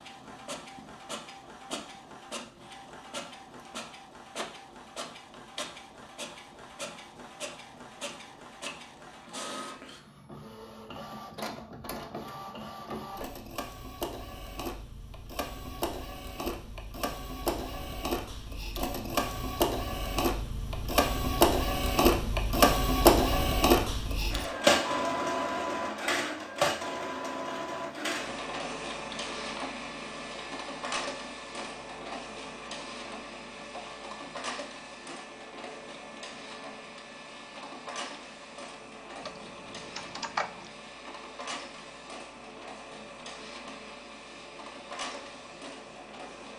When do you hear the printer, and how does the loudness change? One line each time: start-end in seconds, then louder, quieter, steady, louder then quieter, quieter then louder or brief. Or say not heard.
0.0-46.5 louder then quieter.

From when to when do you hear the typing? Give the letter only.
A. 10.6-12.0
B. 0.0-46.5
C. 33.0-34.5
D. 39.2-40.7
D.